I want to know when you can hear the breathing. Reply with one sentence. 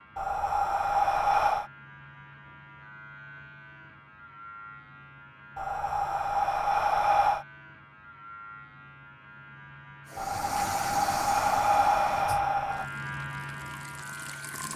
You can hear the breathing from 0.1 to 1.7 s, from 5.5 to 7.5 s and from 10.2 to 12.8 s.